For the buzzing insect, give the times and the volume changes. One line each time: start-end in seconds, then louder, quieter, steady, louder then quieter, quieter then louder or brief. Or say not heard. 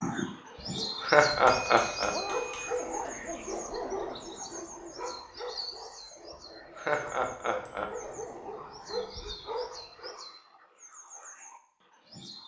not heard.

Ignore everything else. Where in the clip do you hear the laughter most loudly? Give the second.
1 s.